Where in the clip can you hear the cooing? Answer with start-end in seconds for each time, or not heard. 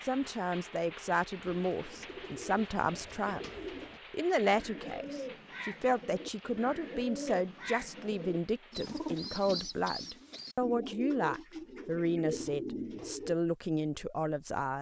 1.4-13.3.